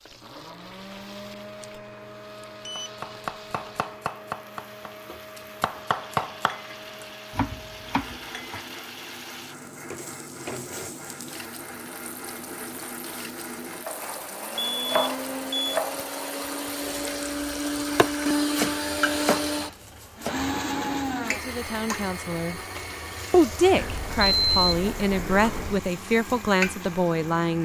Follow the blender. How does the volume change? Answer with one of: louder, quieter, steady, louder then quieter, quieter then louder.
louder then quieter.